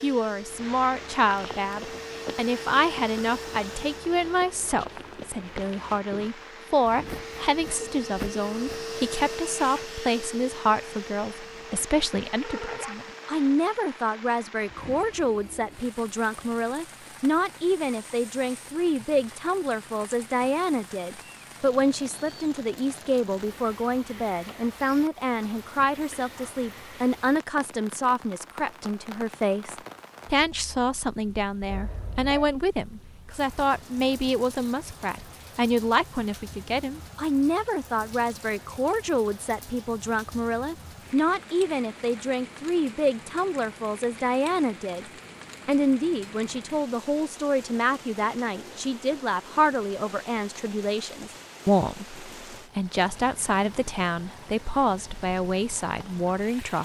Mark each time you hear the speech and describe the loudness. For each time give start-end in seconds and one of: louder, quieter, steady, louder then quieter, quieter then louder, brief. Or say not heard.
0.0-45.0 steady
45.6-56.8 steady.